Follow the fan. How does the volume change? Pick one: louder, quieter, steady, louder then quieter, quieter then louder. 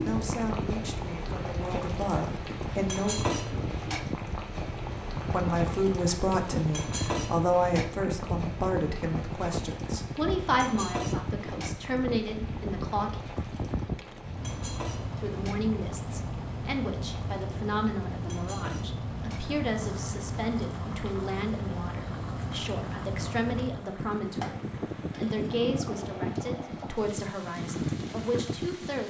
steady.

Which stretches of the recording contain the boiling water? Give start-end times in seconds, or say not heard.
0.0-29.0.